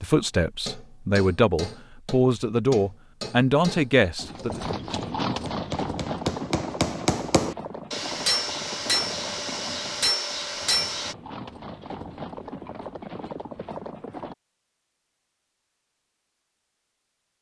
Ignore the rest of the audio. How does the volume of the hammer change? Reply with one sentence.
The volume of the hammer goes up.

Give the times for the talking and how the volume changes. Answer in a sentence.
You can hear the talking from 0.0 to 4.6 s, getting louder.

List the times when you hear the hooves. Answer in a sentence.
You can hear the hooves from 4.2 to 14.3 s.